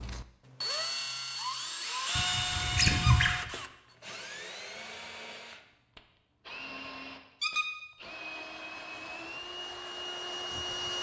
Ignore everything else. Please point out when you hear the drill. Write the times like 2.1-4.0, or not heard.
0.0-10.9.